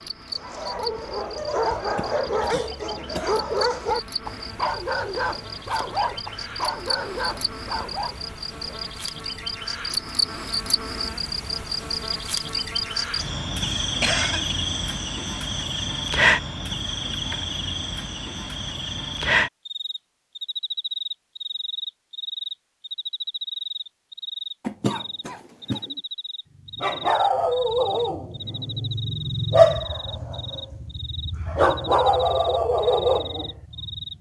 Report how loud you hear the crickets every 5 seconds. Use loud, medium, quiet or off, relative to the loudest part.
medium, medium, loud, loud, medium, medium, medium.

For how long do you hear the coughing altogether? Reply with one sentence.
You can hear the coughing for 4 seconds altogether.